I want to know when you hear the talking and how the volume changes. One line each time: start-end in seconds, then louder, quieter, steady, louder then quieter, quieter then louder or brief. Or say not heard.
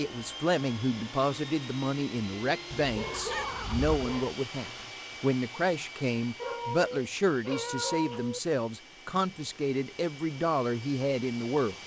0.0-11.8 steady.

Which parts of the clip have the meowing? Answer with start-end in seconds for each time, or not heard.
2.7-4.1, 6.4-8.4.